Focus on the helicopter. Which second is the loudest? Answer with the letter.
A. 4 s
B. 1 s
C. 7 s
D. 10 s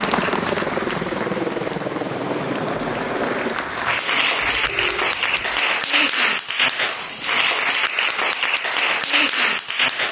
B.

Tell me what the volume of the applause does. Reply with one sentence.
The volume of the applause goes up.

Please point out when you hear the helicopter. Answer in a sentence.
You can hear the helicopter from 0.0 to 5.7 s.